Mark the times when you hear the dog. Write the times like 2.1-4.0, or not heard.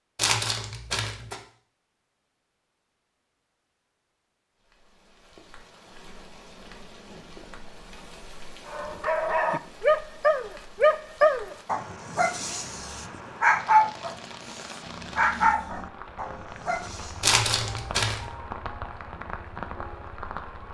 8.7-17.4.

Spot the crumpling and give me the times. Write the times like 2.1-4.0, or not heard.
0.1-1.4, 17.2-18.3.